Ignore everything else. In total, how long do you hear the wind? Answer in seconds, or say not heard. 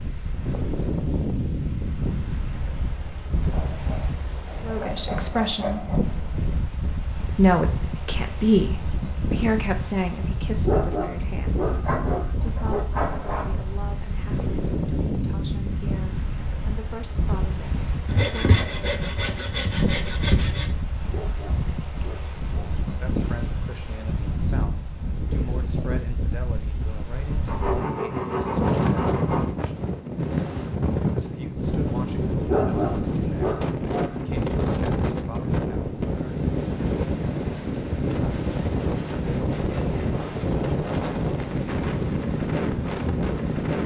44 s.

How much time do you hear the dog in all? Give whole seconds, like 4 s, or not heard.
6 s.